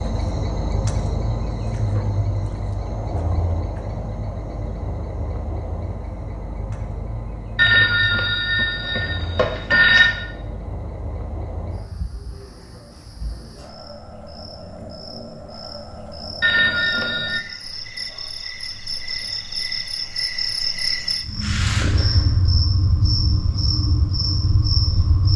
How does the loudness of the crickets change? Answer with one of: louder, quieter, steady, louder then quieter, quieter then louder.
quieter then louder.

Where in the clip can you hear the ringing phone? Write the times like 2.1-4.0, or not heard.
7.5-10.2, 16.4-17.4.